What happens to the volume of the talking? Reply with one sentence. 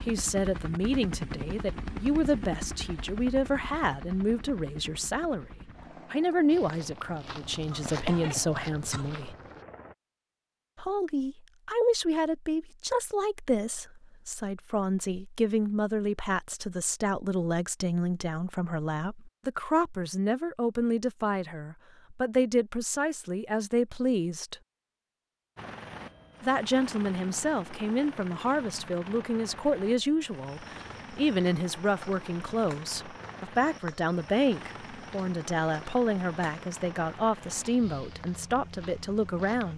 The loudness of the talking stays about the same.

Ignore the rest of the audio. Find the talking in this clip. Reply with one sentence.
The talking can be heard from 0.0 to 5.5 s, from 6.1 to 9.3 s, from 10.8 to 24.6 s and from 26.4 to 39.7 s.